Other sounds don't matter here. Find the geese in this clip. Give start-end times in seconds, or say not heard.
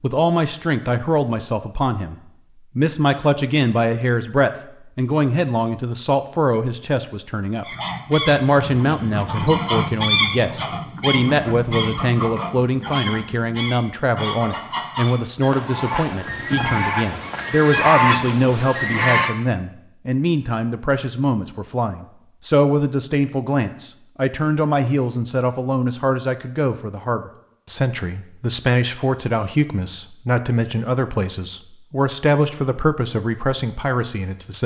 7.7-19.4.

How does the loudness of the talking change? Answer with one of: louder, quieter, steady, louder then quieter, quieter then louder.
steady.